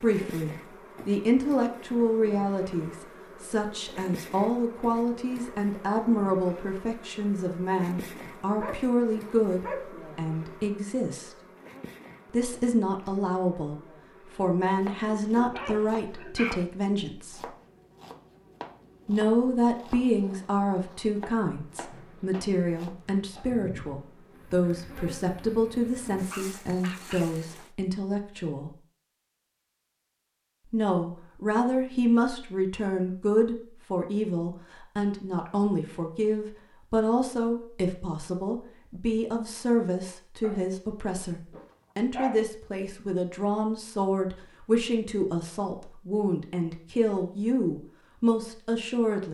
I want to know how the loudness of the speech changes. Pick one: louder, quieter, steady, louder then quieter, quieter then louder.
steady.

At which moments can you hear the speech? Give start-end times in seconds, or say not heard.
0.0-11.3, 12.3-17.4, 19.1-28.8, 30.7-49.2.